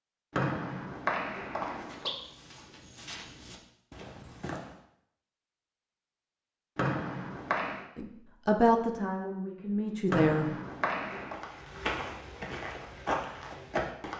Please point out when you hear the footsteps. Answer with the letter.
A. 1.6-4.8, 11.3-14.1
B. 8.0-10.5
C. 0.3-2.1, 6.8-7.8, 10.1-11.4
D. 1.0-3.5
A.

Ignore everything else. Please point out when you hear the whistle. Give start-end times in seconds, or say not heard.
0.3-2.1, 6.8-7.8, 10.1-11.4.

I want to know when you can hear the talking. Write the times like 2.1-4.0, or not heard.
8.0-10.5.